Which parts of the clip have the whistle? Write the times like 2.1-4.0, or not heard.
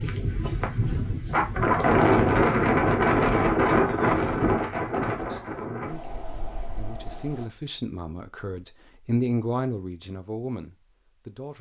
not heard.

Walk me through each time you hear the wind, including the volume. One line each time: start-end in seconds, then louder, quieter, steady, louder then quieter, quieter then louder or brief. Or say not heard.
0.0-7.5 louder then quieter.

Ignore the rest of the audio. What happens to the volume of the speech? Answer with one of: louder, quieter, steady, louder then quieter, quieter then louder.
louder then quieter.